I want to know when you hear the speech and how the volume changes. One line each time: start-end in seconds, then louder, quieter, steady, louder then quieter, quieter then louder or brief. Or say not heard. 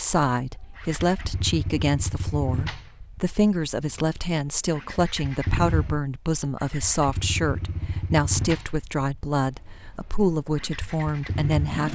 0.0-11.9 steady.